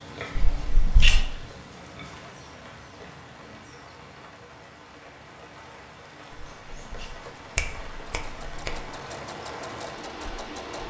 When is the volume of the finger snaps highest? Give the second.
1 s.